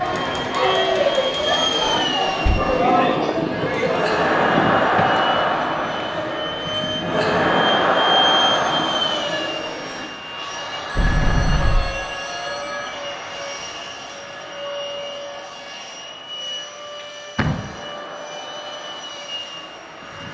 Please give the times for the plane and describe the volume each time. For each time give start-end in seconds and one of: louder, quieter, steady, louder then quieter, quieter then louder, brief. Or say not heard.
0.0-20.2 quieter.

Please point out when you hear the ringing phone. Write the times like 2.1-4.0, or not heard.
10.8-12.9.